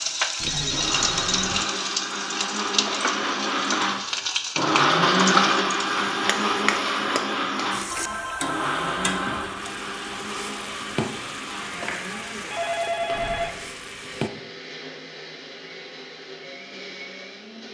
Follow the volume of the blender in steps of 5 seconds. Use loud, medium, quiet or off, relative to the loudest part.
loud, loud, quiet, quiet.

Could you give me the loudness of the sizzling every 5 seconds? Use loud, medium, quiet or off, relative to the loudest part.
loud, loud, medium, off.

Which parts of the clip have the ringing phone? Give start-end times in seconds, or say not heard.
0.4-1.6, 7.9-9.5, 12.5-13.6.